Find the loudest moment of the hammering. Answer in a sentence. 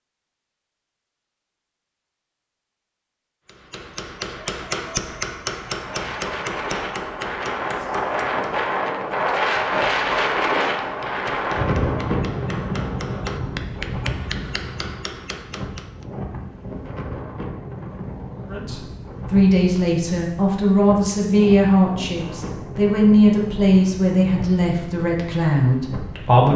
The volume of the hammering peaks at 5 seconds.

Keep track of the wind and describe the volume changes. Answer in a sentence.
The loudness of the wind goes down.